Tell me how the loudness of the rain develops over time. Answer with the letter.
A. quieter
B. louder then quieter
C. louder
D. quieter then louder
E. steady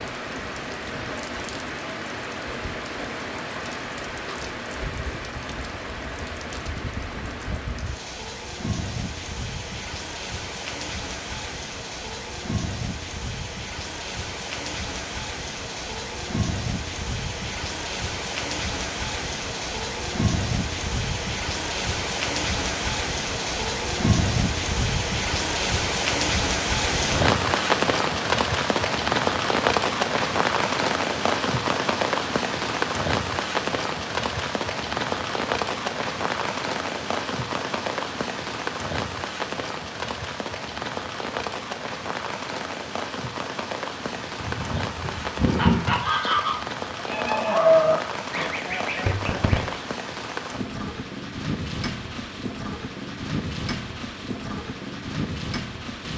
B.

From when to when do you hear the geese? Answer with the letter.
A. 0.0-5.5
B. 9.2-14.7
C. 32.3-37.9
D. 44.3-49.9
D.